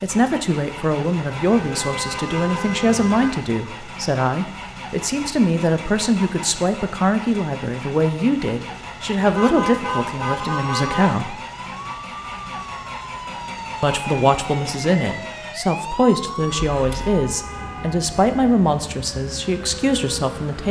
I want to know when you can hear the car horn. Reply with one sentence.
The car horn can be heard from 1.4 to 3.3 s, from 9.2 to 11.2 s and from 16.5 to 18.4 s.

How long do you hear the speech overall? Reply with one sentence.
You can hear the speech for 18 seconds altogether.